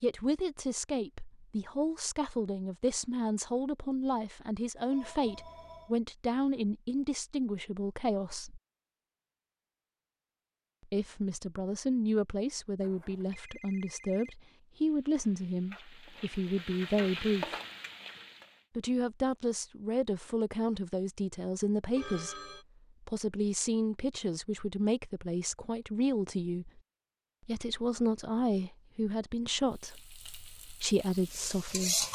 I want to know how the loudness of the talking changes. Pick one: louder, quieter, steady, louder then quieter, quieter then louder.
steady.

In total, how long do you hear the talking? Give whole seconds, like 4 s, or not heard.
27 s.